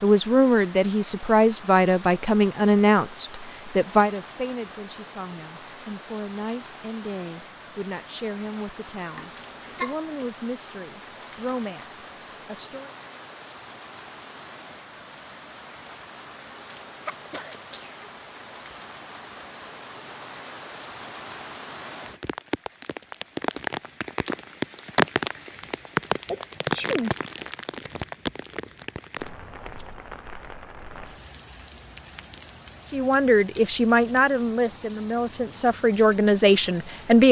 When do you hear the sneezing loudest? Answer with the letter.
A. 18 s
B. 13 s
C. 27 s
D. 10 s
C.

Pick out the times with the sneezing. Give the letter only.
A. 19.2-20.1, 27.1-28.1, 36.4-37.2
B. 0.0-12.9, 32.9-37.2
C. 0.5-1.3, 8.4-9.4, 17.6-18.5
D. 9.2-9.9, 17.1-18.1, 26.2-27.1
D.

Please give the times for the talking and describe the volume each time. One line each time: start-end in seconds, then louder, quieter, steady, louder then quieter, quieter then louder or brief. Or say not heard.
0.0-12.9 quieter
32.9-37.2 quieter then louder.